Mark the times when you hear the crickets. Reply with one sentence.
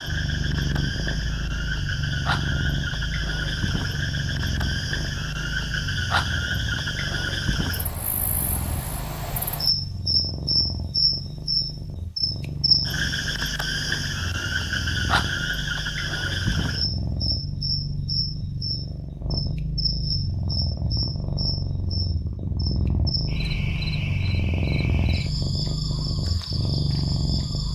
You can hear the crickets from 0.0 to 27.7 s.